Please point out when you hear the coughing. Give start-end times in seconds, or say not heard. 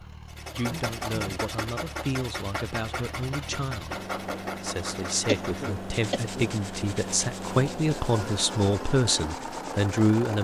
0.1-1.4, 5.2-6.5.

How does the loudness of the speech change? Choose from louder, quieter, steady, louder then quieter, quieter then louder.
louder.